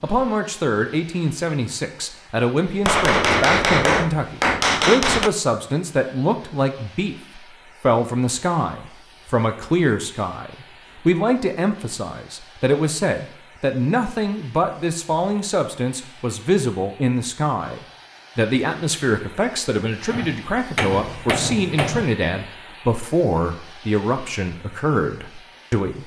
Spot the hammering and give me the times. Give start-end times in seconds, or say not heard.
2.9-5.3, 20.1-22.1.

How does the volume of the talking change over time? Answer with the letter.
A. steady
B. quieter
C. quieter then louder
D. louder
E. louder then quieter
A.